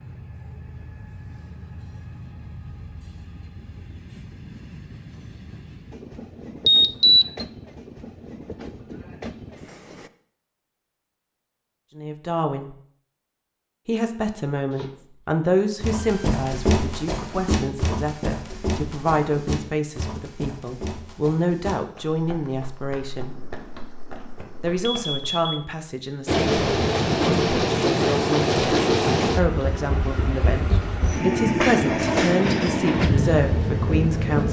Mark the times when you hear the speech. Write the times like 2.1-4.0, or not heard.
11.9-12.8, 13.8-23.4, 24.6-28.5, 29.4-34.4.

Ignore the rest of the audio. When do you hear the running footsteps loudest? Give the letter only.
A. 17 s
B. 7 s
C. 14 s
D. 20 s
A.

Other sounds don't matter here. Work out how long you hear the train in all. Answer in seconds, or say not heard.
18 s.